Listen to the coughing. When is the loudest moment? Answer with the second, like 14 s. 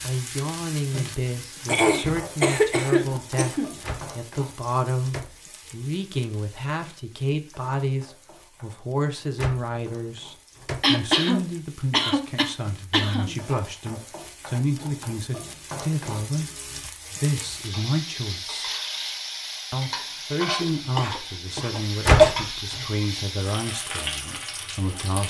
22 s.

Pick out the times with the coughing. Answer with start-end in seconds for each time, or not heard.
1.6-3.7, 10.8-13.3, 20.6-22.4.